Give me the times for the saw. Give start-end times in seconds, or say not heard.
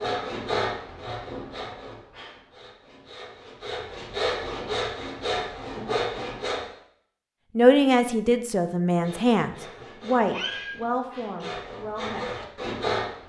0.0-6.7, 8.8-13.2.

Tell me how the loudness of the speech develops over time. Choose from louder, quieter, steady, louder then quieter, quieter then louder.
quieter.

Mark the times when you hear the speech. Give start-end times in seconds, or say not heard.
7.5-12.6.